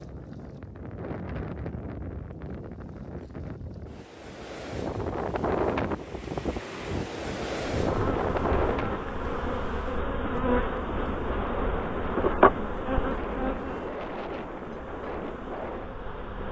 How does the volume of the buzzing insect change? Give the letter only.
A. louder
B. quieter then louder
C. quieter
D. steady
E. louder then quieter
E.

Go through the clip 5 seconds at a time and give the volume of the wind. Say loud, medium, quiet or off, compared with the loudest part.
medium, loud, medium, medium.